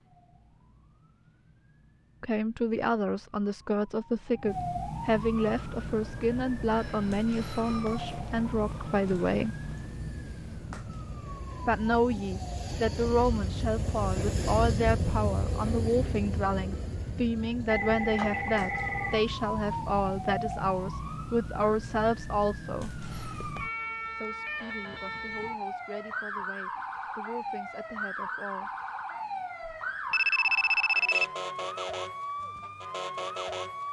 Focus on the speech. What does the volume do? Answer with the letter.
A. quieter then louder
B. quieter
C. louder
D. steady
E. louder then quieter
B.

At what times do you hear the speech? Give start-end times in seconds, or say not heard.
2.2-9.6, 11.7-22.9, 24.1-28.7.